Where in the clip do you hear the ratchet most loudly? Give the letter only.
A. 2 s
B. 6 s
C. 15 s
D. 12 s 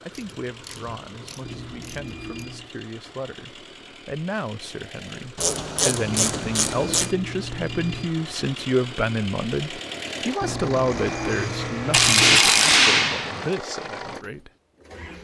D.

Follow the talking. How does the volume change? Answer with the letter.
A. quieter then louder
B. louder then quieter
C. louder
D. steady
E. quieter
B.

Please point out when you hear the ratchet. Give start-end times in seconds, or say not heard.
0.1-2.5, 5.3-7.2, 11.9-13.5.